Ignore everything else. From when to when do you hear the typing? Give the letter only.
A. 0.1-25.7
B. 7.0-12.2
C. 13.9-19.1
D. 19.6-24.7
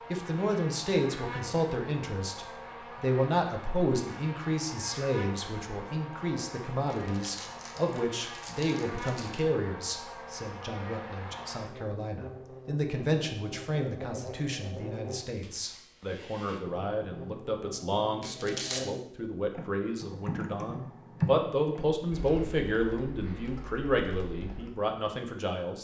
D.